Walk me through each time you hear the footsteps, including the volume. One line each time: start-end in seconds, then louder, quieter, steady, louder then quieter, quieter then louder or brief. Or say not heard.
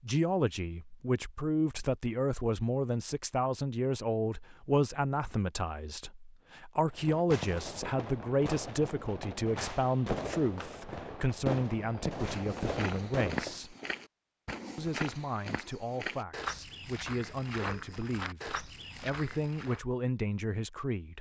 12.3-19.8 steady.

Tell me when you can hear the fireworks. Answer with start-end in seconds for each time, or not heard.
6.9-13.6.